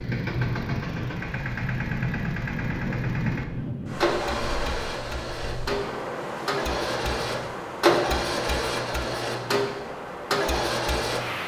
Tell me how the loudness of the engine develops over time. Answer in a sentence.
The loudness of the engine goes up.